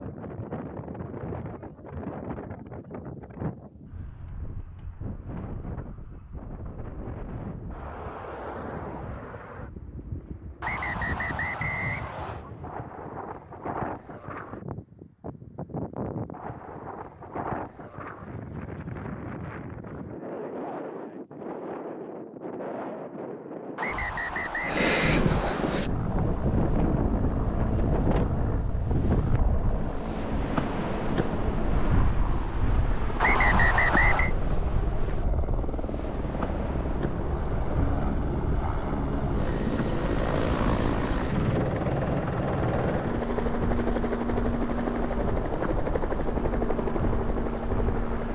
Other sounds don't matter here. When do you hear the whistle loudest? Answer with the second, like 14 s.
34 s.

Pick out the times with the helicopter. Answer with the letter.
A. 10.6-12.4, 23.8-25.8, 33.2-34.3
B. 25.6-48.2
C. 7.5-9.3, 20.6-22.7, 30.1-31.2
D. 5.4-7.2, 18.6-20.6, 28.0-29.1
B.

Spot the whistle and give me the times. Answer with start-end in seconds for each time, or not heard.
10.6-12.4, 23.8-25.8, 33.2-34.3.